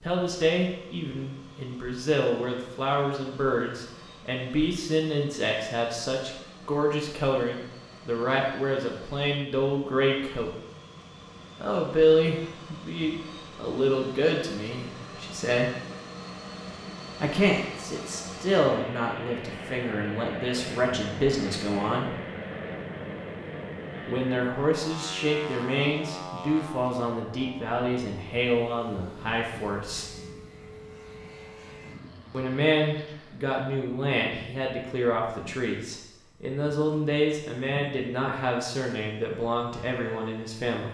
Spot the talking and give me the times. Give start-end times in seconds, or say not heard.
0.0-10.5, 11.6-15.7, 17.2-22.1, 24.1-30.1, 32.3-40.8.